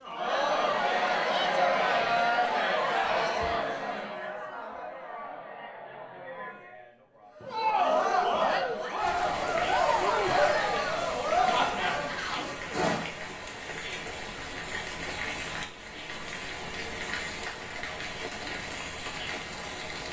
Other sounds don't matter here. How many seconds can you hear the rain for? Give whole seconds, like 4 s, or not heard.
11 s.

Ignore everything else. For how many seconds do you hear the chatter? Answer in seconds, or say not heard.
13 s.